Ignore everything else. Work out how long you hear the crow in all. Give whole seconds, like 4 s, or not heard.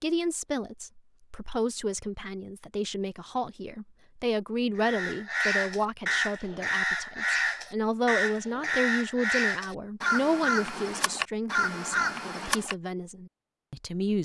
8 s.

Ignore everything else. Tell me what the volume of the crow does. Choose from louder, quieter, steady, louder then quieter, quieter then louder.
steady.